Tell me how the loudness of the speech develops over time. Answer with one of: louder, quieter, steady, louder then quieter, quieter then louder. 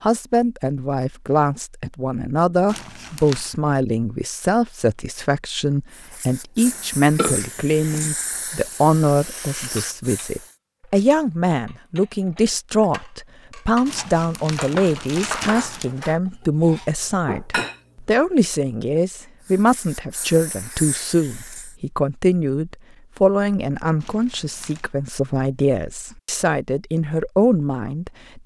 steady.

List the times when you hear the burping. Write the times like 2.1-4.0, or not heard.
6.7-8.1.